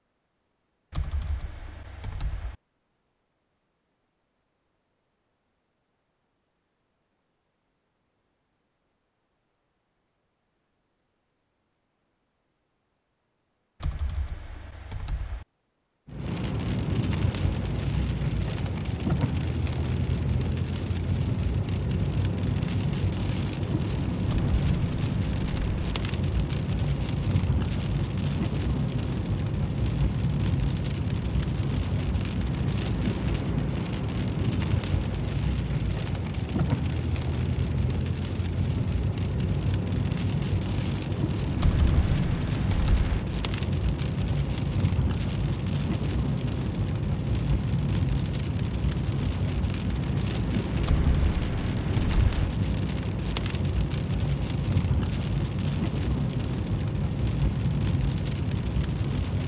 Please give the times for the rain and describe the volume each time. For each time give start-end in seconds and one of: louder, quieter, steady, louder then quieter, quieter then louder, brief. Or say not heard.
16.1-59.4 steady.